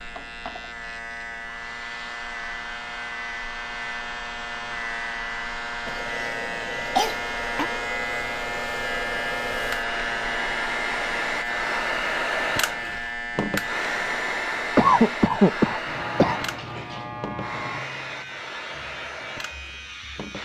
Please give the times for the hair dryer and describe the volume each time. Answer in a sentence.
The hair dryer can be heard from 0.0 to 20.4 s, getting louder then quieter.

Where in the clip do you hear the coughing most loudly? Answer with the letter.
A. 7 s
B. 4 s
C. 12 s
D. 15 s
D.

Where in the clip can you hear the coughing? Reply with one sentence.
The coughing can be heard from 5.8 to 7.7 s and from 14.8 to 16.4 s.